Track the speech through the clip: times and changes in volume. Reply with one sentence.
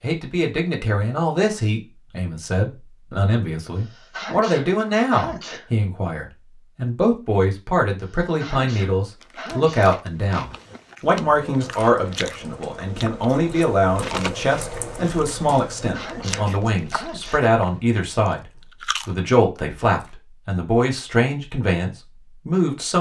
You can hear the speech from 0.0 to 22.9 s, at a steady volume.